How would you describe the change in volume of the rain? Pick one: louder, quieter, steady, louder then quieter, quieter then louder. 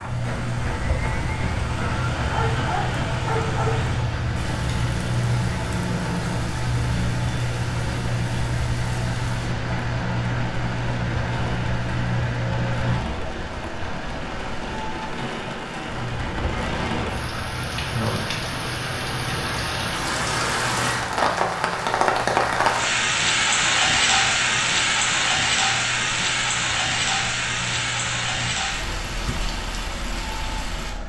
louder.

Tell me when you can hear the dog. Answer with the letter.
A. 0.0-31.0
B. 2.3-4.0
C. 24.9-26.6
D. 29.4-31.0
B.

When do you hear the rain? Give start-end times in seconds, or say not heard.
0.0-31.0.